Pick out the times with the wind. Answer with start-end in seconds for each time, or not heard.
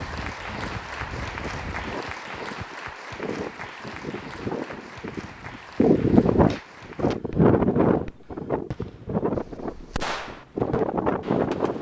0.0-11.7.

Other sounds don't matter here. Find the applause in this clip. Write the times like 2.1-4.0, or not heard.
0.0-7.2.